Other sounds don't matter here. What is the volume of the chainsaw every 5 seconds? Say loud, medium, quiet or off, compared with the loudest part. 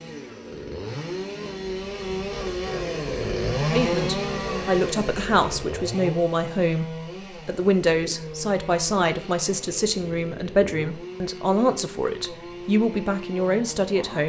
loud, medium, medium.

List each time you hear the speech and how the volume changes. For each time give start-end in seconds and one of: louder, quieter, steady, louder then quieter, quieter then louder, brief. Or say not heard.
3.6-14.2 steady.